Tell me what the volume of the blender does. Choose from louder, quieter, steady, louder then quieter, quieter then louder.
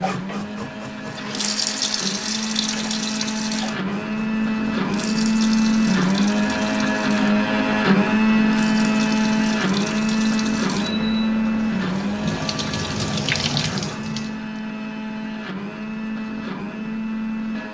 louder then quieter.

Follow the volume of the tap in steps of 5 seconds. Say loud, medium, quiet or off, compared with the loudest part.
loud, medium, loud, off.